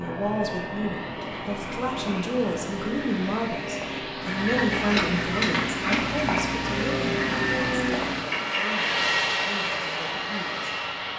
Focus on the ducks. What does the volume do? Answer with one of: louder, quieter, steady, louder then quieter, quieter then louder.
louder.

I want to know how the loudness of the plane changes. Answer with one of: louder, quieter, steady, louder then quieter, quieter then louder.
louder.